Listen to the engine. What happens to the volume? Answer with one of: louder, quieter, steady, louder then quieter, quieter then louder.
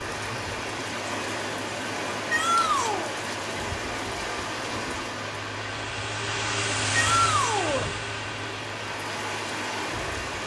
louder then quieter.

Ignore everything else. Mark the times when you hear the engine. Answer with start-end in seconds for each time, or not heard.
0.1-10.4.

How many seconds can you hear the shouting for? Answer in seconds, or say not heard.
2 s.